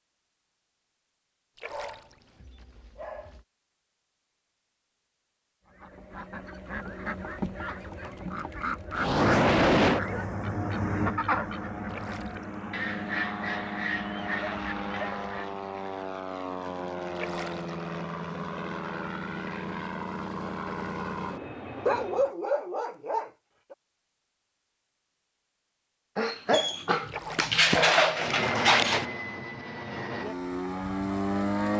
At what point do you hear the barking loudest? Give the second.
28 s.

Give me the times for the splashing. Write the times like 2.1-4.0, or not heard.
1.6-2.2, 11.8-12.6, 17.1-17.8, 27.1-27.6.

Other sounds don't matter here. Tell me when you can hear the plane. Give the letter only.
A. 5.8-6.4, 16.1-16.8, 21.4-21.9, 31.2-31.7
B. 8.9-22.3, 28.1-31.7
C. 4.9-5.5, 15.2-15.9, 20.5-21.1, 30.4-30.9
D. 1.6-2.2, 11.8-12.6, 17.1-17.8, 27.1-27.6
B.